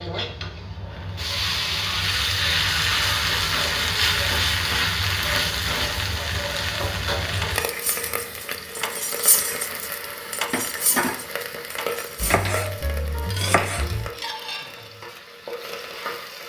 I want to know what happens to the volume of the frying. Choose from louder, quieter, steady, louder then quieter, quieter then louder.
quieter.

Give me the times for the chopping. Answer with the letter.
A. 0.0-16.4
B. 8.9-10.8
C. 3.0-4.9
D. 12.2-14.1
D.